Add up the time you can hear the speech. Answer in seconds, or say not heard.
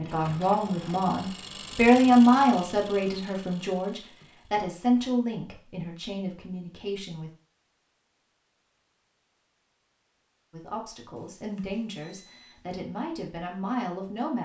11 s.